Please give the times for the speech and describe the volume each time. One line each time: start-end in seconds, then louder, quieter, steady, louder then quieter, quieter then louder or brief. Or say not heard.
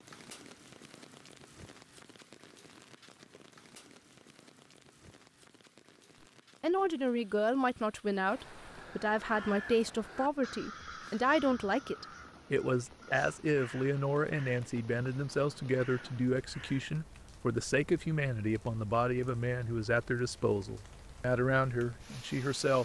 6.6-22.8 steady.